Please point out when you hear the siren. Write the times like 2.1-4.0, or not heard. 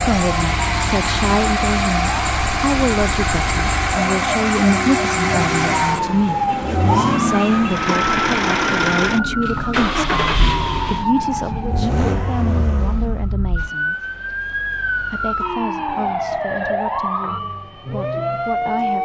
0.2-19.0.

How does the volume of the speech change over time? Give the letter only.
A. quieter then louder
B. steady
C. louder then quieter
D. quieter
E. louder
D.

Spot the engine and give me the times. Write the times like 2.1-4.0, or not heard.
0.0-13.3.